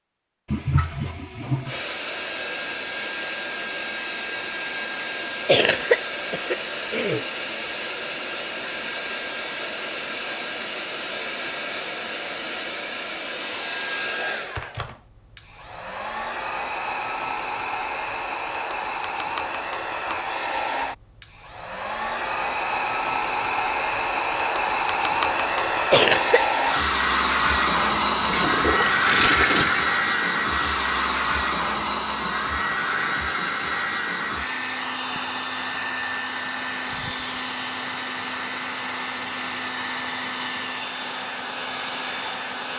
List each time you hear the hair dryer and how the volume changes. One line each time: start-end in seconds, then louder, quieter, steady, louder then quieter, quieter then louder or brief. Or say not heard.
1.6-42.7 louder then quieter.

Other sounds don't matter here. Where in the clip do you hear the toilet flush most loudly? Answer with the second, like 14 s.
29 s.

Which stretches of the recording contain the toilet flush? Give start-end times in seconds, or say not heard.
0.5-1.8, 28.1-29.9.